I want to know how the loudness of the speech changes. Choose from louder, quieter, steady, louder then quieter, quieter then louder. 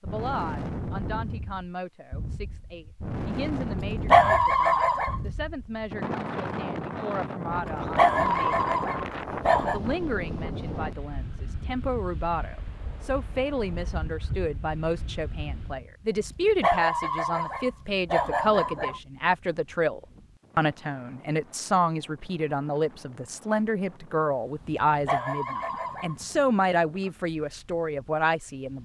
louder.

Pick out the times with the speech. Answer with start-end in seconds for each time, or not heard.
0.0-8.7, 9.7-28.8.